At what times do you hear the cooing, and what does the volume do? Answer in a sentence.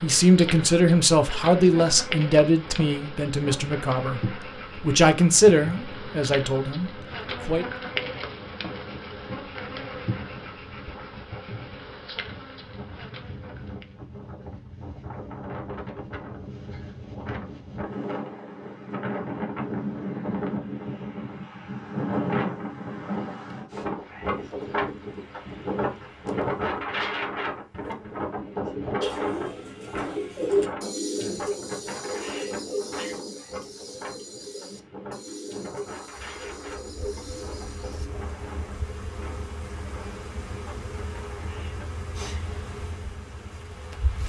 The cooing can be heard from 29.0 to 38.1 s, getting quieter.